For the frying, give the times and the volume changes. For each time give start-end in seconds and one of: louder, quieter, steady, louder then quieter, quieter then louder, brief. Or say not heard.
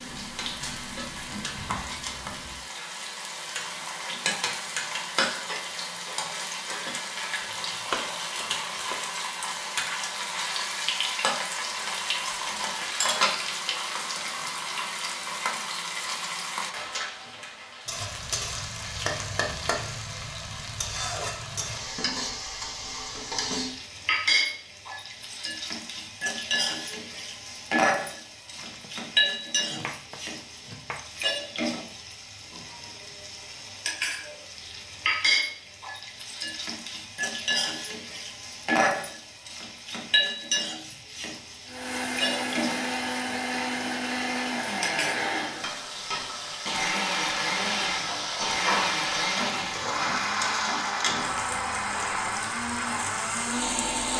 0.0-54.1 steady.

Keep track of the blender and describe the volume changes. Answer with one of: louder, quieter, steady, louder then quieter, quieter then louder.
steady.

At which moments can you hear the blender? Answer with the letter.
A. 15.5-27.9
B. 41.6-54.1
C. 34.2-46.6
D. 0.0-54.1
B.